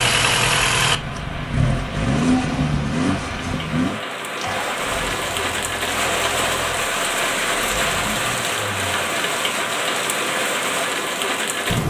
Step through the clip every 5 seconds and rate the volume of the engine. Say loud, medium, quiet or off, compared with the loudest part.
loud, quiet, off.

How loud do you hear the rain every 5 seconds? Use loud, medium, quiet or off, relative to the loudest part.
medium, loud, loud.